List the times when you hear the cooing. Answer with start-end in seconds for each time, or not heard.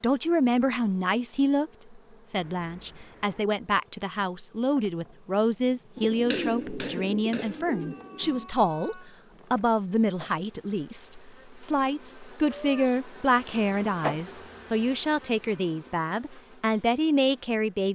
6.0-8.5.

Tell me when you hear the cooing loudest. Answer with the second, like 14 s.
6 s.